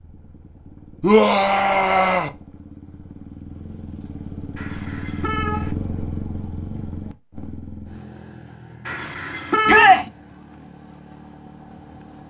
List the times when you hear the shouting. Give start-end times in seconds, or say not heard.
1.0-2.3, 9.7-10.1.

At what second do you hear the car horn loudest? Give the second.
10 s.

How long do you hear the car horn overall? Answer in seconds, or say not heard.
3 s.